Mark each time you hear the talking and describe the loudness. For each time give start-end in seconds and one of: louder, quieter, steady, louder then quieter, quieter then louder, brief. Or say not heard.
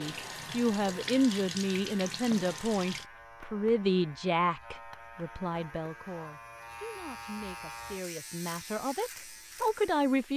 0.0-10.3 quieter then louder.